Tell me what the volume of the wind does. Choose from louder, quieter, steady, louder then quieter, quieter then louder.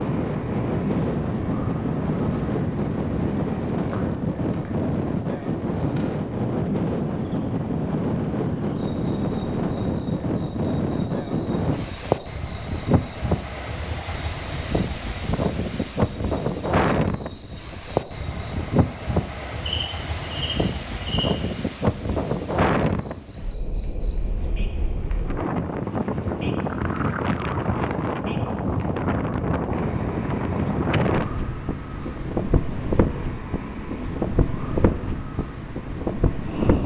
steady.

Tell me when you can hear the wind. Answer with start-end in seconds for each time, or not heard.
0.0-36.8.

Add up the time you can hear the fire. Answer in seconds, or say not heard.
not heard.